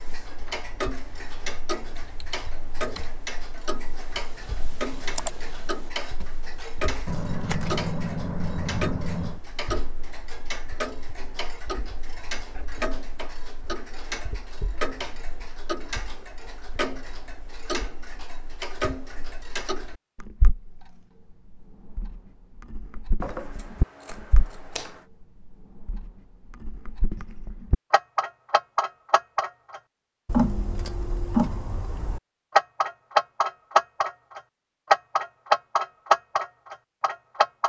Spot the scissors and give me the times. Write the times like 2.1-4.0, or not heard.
7.0-9.4, 23.2-25.0.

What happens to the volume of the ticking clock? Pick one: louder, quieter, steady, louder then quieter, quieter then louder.
louder.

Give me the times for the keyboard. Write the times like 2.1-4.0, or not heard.
1.9-6.9.